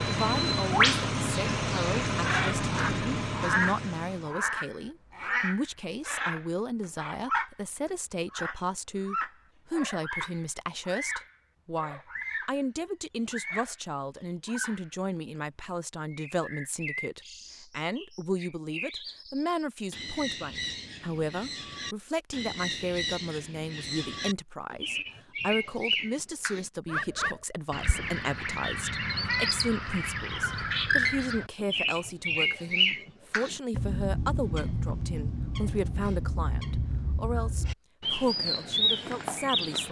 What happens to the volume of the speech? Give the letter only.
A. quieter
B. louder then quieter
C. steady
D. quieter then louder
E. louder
C.